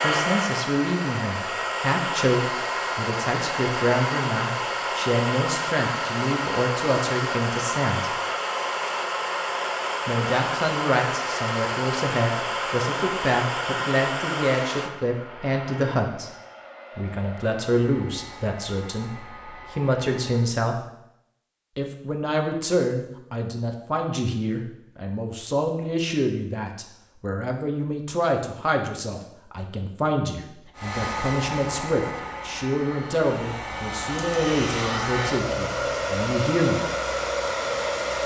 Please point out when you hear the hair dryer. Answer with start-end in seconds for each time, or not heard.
0.0-20.6, 30.8-38.2.